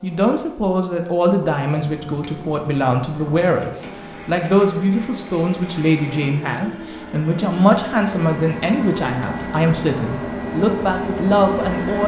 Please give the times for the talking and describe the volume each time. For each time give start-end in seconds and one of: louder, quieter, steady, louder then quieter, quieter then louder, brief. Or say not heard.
0.0-12.0 steady.